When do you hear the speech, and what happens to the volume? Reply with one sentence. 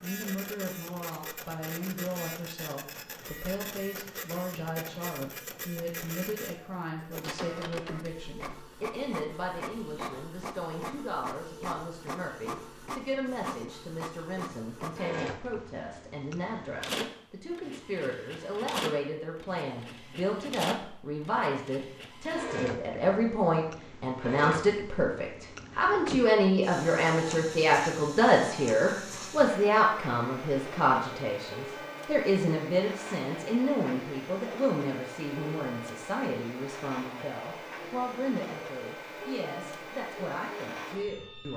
The speech can be heard from 0.0 to 41.5 s, getting louder then quieter.